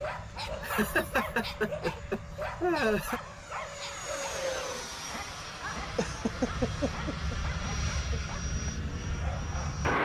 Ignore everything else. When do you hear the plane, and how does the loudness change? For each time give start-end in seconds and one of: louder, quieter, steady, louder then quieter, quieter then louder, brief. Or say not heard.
0.0-10.0 louder.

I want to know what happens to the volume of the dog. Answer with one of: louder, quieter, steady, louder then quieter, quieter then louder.
quieter.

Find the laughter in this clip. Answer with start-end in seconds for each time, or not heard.
0.6-3.2, 6.0-8.2.